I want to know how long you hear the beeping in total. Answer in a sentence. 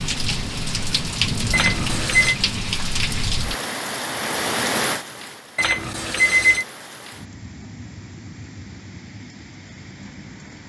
You can hear the beeping for 2 seconds altogether.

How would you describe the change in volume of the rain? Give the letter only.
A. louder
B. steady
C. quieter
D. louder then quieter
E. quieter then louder
C.